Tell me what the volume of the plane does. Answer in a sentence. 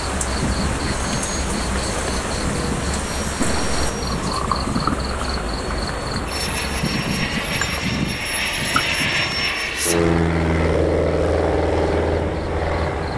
The loudness of the plane goes up.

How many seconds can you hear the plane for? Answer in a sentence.
You can hear the plane for 13 seconds altogether.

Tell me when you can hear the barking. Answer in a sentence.
The barking can't be heard in this clip.